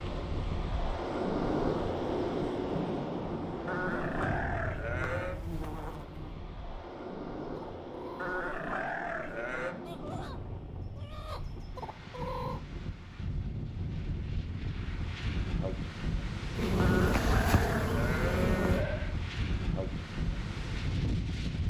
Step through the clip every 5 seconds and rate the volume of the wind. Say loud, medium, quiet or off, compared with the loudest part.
loud, medium, medium, loud, loud.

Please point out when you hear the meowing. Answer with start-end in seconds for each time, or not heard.
not heard.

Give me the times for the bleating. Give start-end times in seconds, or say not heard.
3.6-5.4, 8.2-9.8, 16.8-19.1.